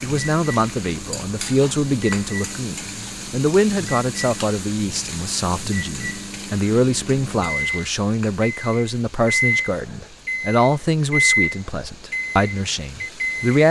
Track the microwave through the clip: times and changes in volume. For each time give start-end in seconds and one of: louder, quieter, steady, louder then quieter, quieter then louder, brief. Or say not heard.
0.0-13.6 louder.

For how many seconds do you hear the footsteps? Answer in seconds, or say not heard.
not heard.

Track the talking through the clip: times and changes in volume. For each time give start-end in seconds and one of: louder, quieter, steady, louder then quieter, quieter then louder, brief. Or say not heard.
0.0-13.6 steady.